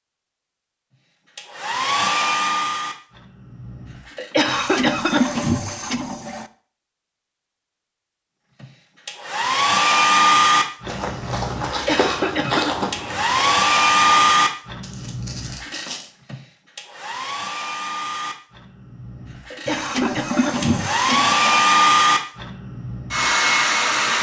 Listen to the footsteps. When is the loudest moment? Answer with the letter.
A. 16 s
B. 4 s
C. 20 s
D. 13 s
D.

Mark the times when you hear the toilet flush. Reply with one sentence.
The toilet flush can be heard from 4.5 to 6.5 s and from 19.6 to 21.6 s.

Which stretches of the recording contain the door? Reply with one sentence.
The door can't be heard in this clip.